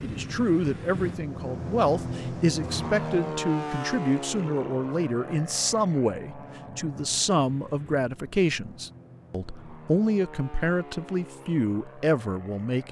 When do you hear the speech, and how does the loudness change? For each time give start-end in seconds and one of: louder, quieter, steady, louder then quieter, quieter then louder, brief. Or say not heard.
0.0-12.8 steady.